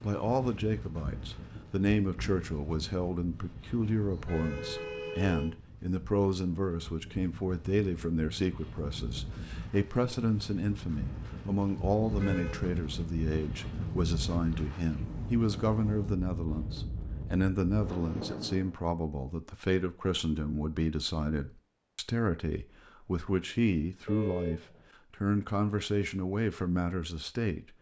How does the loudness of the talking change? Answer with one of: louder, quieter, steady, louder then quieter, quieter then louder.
steady.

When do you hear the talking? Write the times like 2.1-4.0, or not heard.
0.0-27.7.